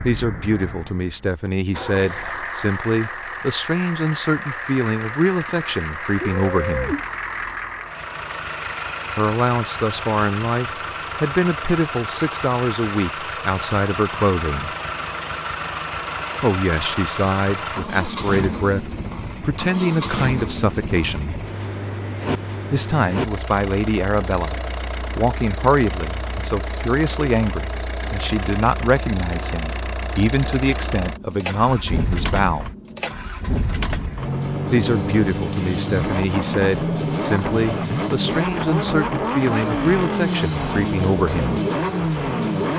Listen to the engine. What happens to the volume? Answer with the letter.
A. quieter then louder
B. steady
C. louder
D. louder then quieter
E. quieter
C.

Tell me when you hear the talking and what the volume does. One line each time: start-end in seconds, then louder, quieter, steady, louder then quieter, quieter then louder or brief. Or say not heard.
0.0-7.0 steady
9.2-14.7 steady
16.4-21.4 steady
22.7-32.7 steady
34.7-41.6 steady.